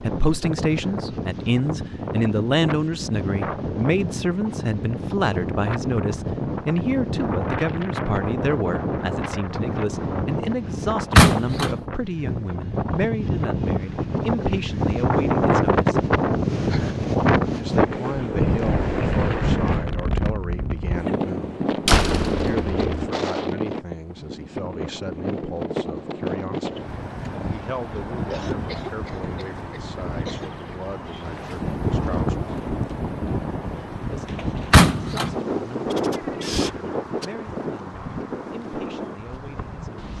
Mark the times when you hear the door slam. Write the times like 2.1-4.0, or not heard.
11.2-11.8, 21.9-23.1, 34.7-35.4.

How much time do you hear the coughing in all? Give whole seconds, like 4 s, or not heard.
2 s.